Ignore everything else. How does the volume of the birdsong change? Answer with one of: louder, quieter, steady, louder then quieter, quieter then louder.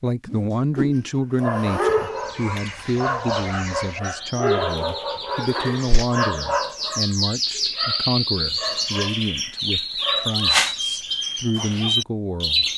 louder.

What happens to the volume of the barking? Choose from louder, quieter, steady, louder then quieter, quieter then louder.
quieter.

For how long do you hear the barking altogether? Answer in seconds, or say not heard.
11 s.